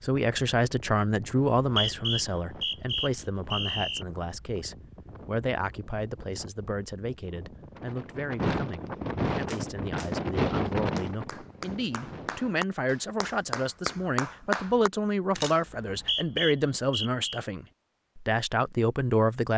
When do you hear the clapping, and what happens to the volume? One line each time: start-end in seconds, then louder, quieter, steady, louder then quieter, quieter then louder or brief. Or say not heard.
9.3-14.9 louder.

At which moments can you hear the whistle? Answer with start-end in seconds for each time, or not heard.
1.4-4.0, 15.7-17.4.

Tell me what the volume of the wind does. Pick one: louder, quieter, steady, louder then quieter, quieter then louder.
louder.